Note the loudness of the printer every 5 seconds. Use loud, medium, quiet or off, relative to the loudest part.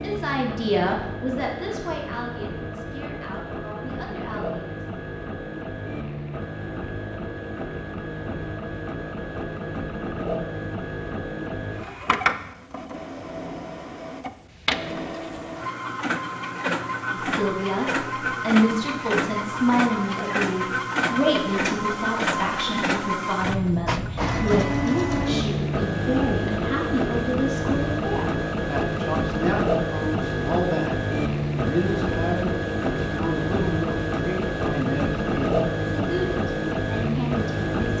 medium, medium, medium, loud, loud, loud, loud, loud.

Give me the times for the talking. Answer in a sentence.
You can hear the talking from 0.0 to 4.8 s and from 17.1 to 37.9 s.